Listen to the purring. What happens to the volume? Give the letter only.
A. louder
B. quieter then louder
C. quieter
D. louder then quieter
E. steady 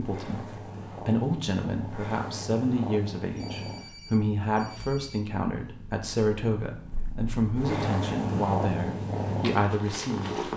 B.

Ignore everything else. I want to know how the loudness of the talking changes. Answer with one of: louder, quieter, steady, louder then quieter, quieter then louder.
steady.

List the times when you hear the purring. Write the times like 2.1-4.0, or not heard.
0.0-10.5.